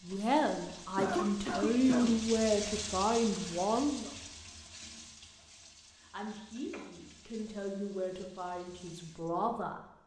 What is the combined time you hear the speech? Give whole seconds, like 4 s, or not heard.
8 s.